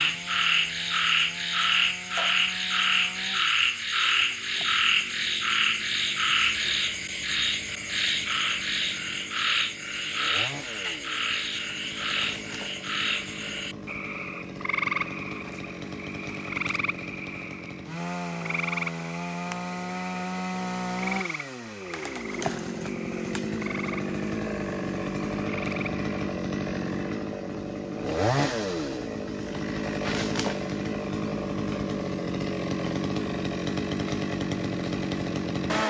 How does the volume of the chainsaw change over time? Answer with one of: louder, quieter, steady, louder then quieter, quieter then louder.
louder.